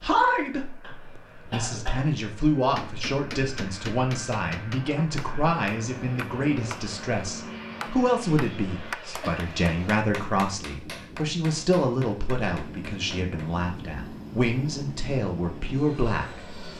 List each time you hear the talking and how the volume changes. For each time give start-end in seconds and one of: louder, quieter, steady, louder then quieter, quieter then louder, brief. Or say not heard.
0.0-16.5 steady.